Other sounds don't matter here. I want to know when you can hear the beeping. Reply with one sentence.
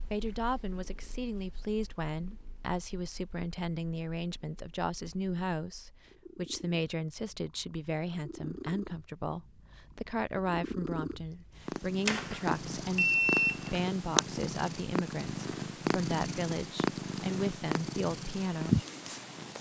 You can hear the beeping from 12.1 to 13.8 s.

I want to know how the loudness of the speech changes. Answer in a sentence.
The loudness of the speech stays about the same.